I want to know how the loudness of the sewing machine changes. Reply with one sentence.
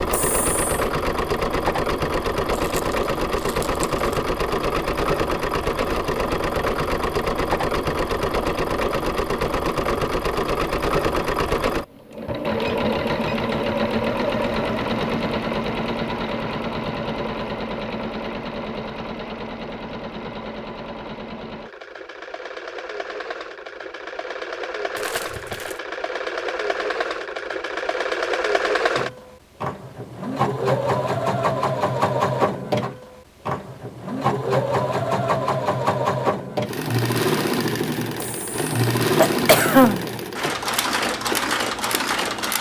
The loudness of the sewing machine goes down, then up.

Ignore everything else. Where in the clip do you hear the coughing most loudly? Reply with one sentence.
The loudest moment of the coughing is at 40 seconds.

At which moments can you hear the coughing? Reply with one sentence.
The coughing can be heard from 0.1 to 0.8 s and from 38.2 to 40.0 s.